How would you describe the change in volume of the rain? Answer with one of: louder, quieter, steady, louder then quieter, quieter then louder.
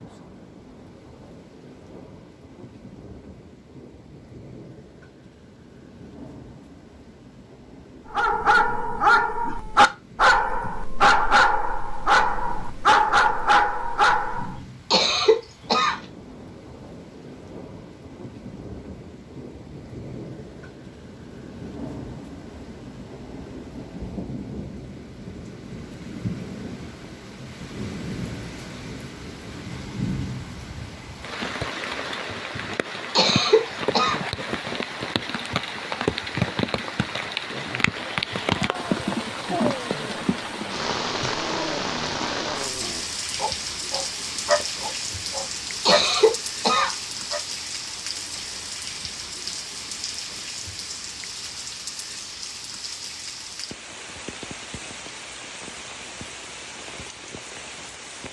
louder then quieter.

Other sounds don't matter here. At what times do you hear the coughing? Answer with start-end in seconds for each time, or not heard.
14.9-16.0, 33.1-34.2, 45.9-47.0.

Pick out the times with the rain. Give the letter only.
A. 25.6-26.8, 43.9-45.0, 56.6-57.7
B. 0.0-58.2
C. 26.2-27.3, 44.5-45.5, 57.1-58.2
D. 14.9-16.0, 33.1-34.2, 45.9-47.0
B.